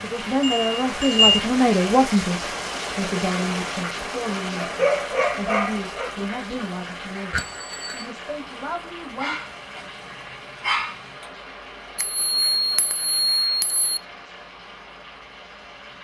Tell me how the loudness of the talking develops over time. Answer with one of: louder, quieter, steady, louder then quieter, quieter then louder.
quieter.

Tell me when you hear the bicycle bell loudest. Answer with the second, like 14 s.
1 s.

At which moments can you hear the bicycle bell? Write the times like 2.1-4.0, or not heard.
0.4-1.4, 7.3-8.1, 11.9-14.0.